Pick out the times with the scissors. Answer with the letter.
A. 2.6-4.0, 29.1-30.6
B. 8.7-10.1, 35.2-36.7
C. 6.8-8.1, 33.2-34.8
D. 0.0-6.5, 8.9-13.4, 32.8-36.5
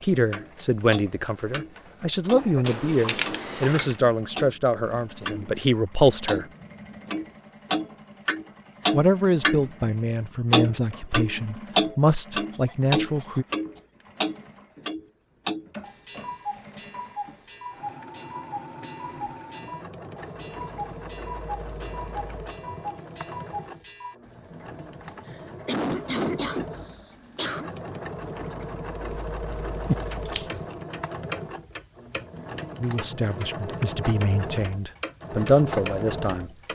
A.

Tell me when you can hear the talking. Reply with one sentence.
You can hear the talking from 0.0 to 6.5 s, from 8.9 to 13.4 s and from 32.8 to 36.5 s.